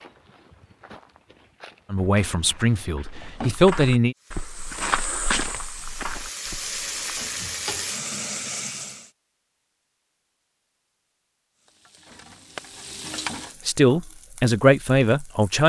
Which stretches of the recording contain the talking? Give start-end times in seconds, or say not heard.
1.9-4.2, 13.7-15.6.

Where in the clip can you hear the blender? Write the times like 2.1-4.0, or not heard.
not heard.